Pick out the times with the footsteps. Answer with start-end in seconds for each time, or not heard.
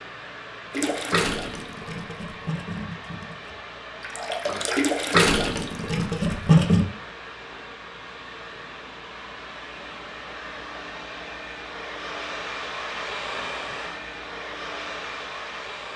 not heard.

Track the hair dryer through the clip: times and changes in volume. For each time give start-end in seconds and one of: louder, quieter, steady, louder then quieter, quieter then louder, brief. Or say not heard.
0.0-15.9 louder.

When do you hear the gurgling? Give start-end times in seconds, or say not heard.
0.7-6.8.